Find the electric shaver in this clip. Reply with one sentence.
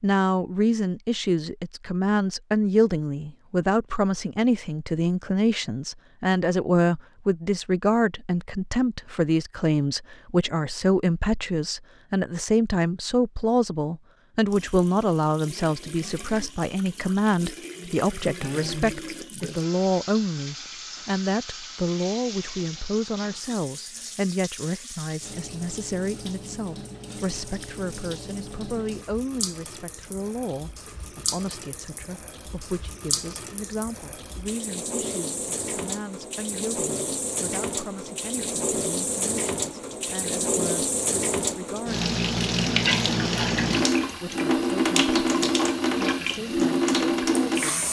You can't hear the electric shaver here.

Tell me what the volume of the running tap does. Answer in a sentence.
The volume of the running tap goes up.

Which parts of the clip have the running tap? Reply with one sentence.
The running tap can be heard from 14.5 to 47.8 s.